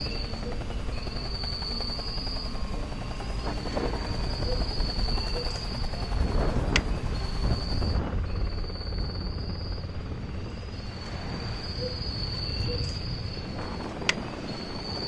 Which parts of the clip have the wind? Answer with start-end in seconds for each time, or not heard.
3.4-15.0.